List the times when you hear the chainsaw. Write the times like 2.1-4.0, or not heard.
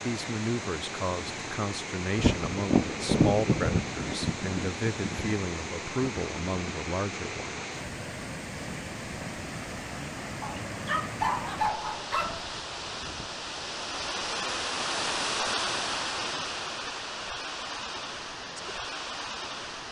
not heard.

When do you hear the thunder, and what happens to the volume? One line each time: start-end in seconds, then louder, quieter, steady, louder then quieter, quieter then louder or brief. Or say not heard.
2.1-6.8 quieter.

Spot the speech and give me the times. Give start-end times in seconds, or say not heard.
0.0-7.7.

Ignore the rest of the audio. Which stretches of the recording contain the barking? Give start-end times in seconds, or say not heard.
10.4-12.4.